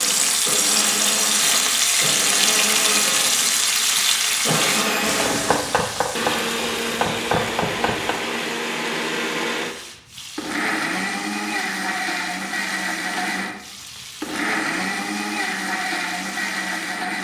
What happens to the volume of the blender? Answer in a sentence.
The volume of the blender stays about the same.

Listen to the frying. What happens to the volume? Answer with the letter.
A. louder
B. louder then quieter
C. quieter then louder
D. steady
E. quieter
E.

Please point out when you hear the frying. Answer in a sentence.
The frying can be heard from 0.0 to 17.1 s.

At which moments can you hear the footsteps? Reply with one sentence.
The footsteps can't be heard in this clip.